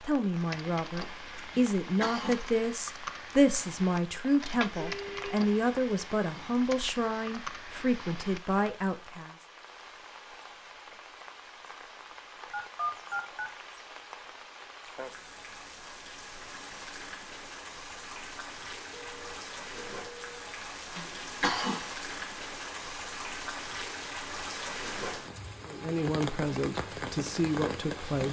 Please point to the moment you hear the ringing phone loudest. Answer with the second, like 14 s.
13 s.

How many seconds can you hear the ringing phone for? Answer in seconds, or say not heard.
3 s.